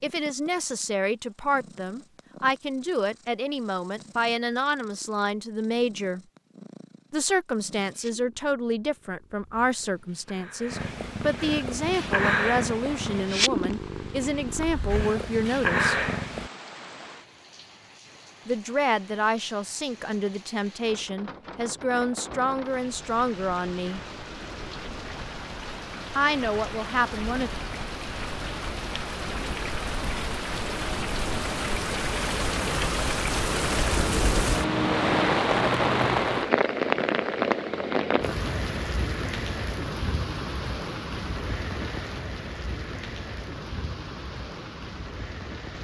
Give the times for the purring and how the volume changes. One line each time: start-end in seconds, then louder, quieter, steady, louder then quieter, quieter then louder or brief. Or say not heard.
0.0-16.5 louder.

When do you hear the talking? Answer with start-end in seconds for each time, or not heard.
0.0-6.2, 7.1-16.1, 18.4-24.0, 26.1-27.5.